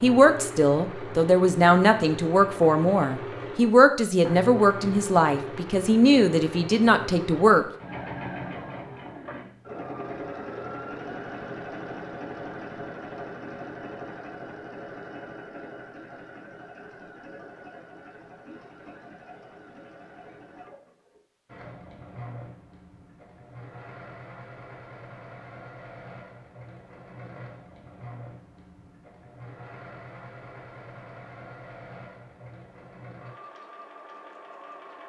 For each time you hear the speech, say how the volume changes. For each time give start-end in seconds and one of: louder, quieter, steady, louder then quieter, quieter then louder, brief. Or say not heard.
0.0-7.7 steady.